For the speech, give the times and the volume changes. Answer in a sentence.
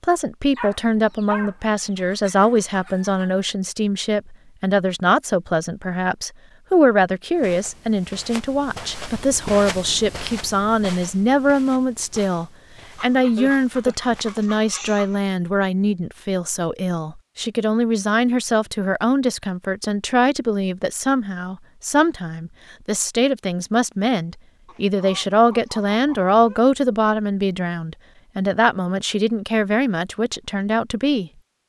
The speech can be heard from 0.0 to 31.3 s, at a steady volume.